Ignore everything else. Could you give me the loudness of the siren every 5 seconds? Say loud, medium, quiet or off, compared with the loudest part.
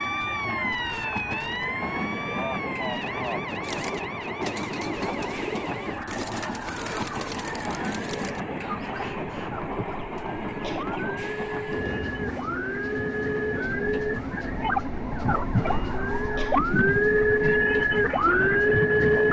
medium, quiet, medium, loud.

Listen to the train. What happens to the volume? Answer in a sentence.
The volume of the train stays about the same.